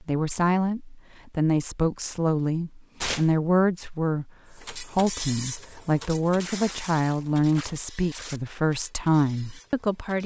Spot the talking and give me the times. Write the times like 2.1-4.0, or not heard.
0.0-10.2.